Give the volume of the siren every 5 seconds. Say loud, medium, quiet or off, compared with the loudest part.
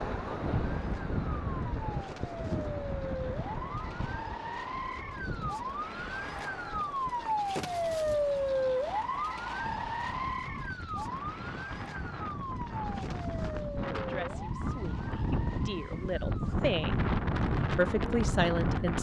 medium, loud, medium, quiet.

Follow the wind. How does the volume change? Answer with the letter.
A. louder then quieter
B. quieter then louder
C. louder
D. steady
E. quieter
B.